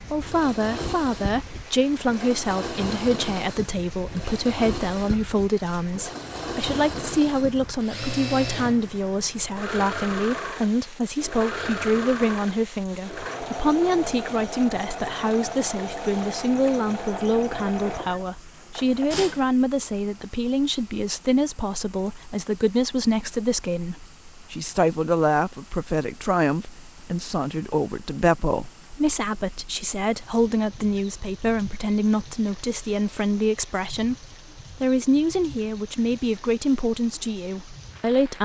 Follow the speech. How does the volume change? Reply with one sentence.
The loudness of the speech stays about the same.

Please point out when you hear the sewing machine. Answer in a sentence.
You can hear the sewing machine from 0.0 to 19.5 s.